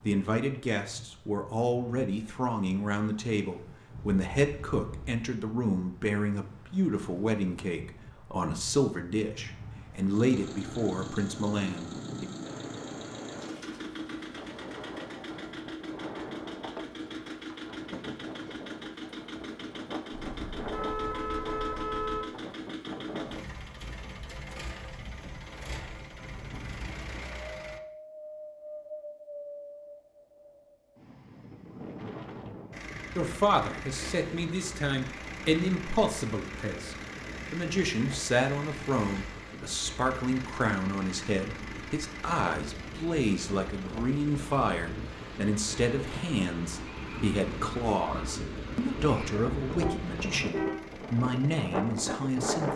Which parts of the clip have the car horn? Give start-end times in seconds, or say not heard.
4.0-5.2, 20.1-22.2, 49.7-50.8.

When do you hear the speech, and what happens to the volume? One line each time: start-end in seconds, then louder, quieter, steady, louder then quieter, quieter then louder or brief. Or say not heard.
0.0-12.2 steady
33.1-52.7 steady.